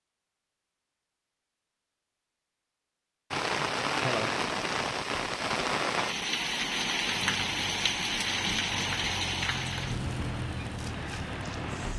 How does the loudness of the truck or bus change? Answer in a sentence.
The loudness of the truck or bus goes up.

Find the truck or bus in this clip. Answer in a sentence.
You can hear the truck or bus from 7.2 to 11.9 s.